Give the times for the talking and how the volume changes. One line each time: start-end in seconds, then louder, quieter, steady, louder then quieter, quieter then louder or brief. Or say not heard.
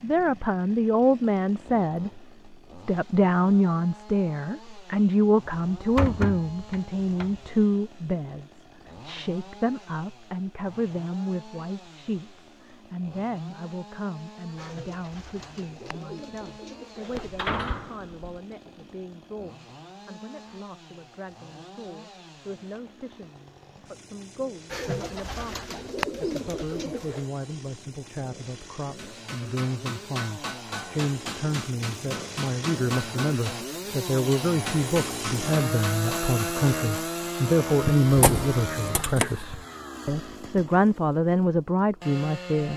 0.0-42.7 quieter then louder.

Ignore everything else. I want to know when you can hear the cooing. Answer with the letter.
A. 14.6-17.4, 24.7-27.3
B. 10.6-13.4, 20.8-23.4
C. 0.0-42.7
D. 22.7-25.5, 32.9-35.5
A.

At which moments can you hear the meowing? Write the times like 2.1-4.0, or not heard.
not heard.